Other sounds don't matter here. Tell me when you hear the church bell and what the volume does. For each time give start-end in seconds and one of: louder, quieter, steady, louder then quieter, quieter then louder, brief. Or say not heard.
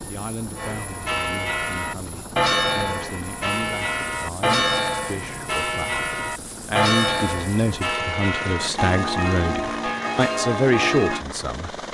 0.6-11.2 steady.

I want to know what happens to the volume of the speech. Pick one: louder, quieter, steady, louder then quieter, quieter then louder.
louder.